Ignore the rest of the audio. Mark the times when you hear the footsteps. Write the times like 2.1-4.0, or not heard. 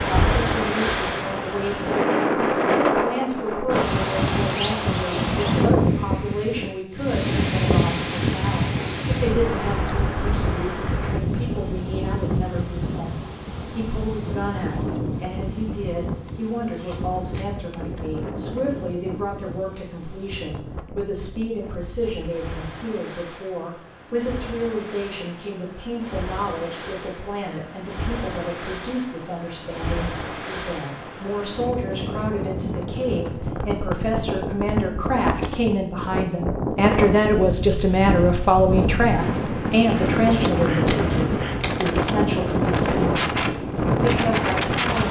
not heard.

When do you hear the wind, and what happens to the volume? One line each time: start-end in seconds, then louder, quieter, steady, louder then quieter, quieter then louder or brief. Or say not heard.
0.0-45.0 quieter then louder.